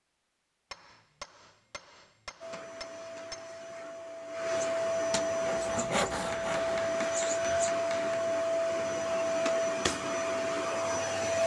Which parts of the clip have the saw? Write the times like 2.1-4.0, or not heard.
5.2-7.0.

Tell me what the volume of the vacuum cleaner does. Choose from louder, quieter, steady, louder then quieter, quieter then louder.
louder.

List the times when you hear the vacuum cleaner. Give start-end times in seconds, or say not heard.
2.4-11.4.